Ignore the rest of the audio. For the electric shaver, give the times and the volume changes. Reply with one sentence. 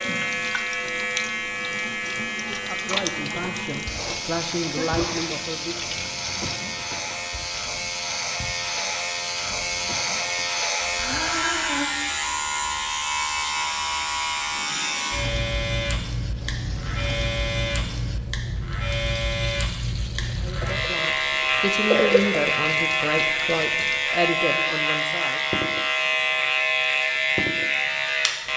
The electric shaver can be heard from 0.0 to 28.5 s, getting louder.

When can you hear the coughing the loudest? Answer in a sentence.
The loudest moment of the coughing is at 22 seconds.